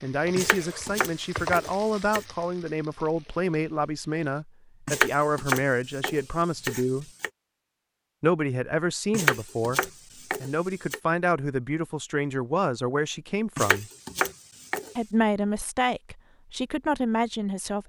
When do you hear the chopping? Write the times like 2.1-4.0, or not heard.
0.3-2.2, 4.8-7.3, 9.1-11.0, 13.6-14.9.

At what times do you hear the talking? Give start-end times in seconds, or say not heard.
0.0-7.1, 8.2-13.9, 14.9-17.8.